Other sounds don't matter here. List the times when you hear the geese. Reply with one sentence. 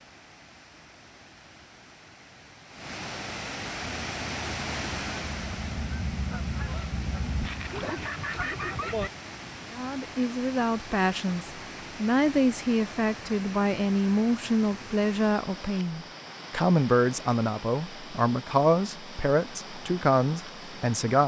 You can hear the geese from 3.8 to 9.1 s.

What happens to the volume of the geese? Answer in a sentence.
The volume of the geese goes up.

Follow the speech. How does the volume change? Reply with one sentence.
The loudness of the speech stays about the same.